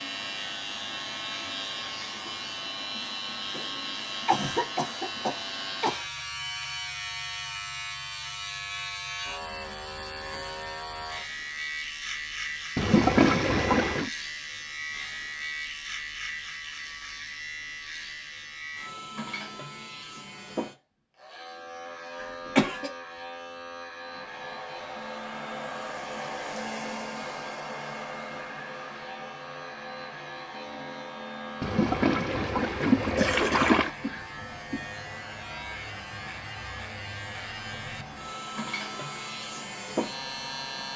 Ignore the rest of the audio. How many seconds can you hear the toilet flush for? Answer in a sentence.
The toilet flush can be heard for 4 seconds in total.